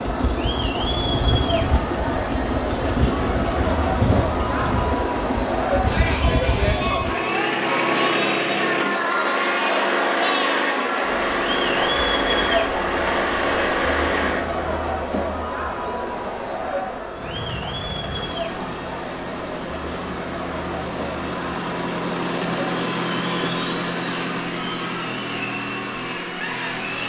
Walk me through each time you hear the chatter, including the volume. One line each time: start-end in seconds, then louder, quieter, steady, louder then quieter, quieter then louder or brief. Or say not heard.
0.0-27.0 quieter.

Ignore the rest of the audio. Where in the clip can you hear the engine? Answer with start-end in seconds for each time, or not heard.
0.0-14.5, 17.1-27.0.